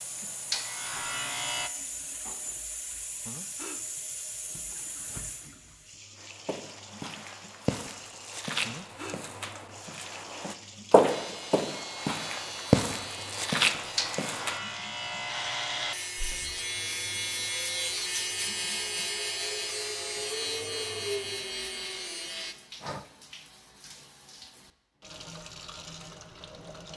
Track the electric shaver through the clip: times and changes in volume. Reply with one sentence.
You can hear the electric shaver briefly from 0.0 to 1.7 s; and from 11.1 to 22.6 s, getting louder.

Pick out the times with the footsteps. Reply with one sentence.
You can hear the footsteps from 6.2 to 14.6 s.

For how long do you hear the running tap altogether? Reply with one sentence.
You can hear the running tap for 27 seconds altogether.